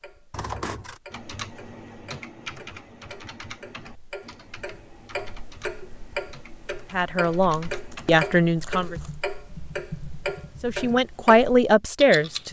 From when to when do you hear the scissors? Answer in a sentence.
You can hear the scissors from 0.3 to 1.0 s and from 7.5 to 9.1 s.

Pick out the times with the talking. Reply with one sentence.
You can hear the talking from 6.9 to 8.9 s and from 10.6 to 12.4 s.